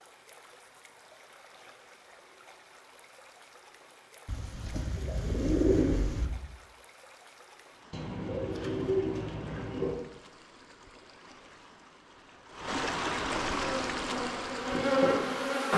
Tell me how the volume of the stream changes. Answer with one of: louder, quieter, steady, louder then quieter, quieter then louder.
louder.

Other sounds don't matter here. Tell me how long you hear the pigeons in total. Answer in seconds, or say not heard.
4 s.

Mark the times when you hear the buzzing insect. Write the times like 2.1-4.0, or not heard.
13.6-15.7.